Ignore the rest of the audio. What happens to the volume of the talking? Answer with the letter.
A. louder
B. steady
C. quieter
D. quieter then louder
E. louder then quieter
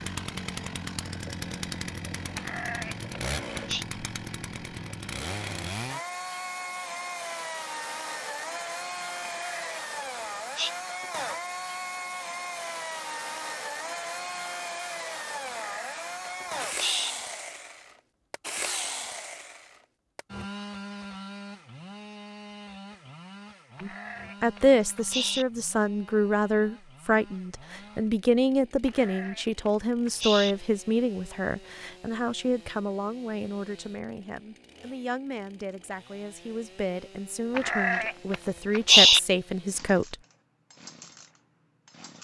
D.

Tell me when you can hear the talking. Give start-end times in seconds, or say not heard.
23.8-40.1.